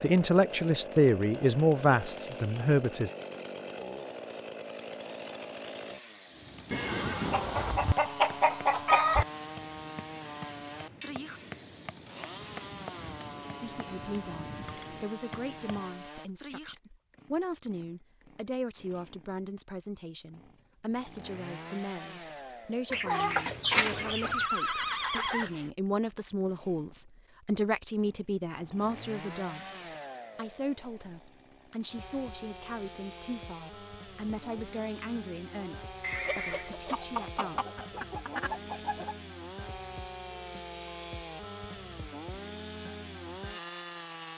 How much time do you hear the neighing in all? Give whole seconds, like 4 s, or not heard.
3 s.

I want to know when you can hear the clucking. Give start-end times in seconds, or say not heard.
7.2-9.2, 22.9-24.5, 36.2-39.1.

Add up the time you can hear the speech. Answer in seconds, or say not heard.
27 s.